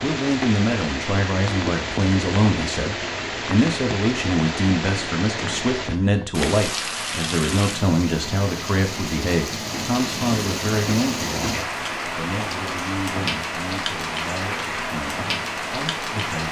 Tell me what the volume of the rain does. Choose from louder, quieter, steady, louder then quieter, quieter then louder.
steady.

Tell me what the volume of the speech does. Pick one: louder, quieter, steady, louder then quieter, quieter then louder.
quieter.